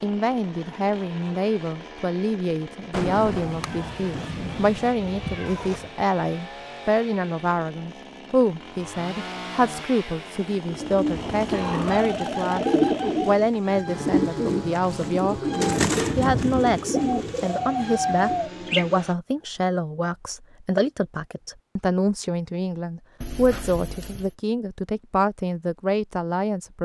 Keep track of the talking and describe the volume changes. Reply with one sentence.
The volume of the talking stays about the same.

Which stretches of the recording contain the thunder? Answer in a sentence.
The thunder can be heard from 2.9 to 5.0 s and from 15.8 to 16.8 s.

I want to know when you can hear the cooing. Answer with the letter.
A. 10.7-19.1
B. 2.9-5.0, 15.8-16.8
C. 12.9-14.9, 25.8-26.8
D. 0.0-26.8
A.